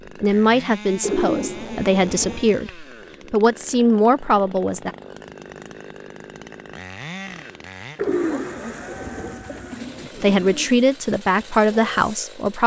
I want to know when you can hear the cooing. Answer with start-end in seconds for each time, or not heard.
1.0-2.5, 8.0-10.8.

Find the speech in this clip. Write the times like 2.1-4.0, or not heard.
0.2-5.0, 10.2-12.6.